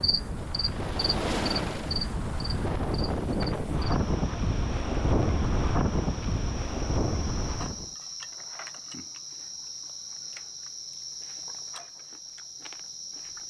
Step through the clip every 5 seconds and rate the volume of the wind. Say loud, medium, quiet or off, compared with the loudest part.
loud, loud, off.